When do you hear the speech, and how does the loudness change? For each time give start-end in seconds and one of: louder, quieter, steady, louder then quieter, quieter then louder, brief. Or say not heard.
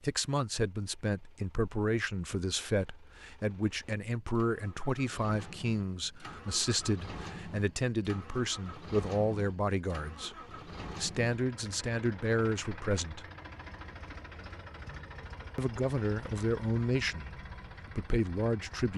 0.0-13.2 steady
15.6-17.3 brief
17.9-18.9 brief.